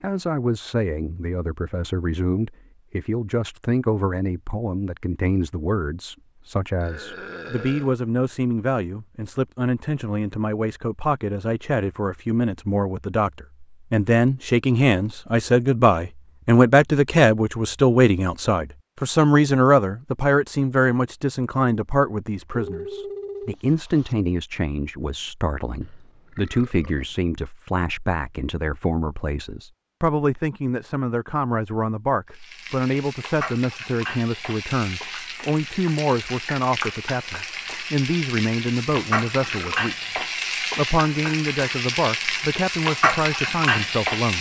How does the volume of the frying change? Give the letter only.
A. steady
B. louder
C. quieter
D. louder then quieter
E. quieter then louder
B.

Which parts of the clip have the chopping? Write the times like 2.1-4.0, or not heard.
not heard.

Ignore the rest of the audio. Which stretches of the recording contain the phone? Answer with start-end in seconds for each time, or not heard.
22.5-24.1.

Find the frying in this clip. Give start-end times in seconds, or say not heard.
32.3-44.3.